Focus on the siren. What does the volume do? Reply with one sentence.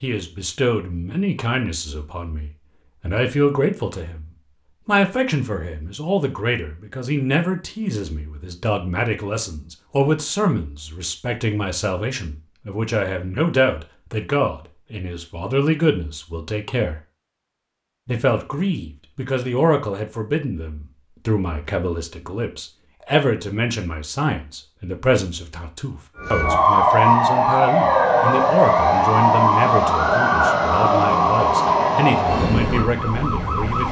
The volume of the siren goes down.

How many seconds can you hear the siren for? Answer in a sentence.
You can hear the siren for 8 seconds altogether.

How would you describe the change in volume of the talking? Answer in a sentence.
The loudness of the talking stays about the same.